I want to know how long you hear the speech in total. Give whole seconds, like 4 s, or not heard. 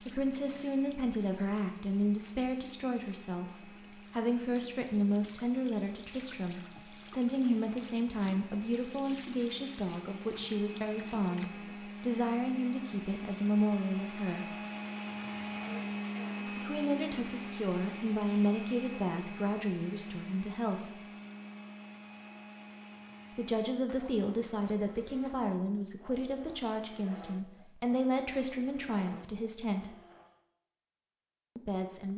26 s.